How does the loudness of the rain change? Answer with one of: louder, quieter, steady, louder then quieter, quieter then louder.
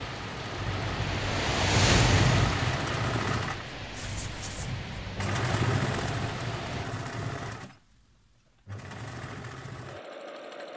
louder then quieter.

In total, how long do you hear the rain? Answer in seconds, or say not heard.
7 s.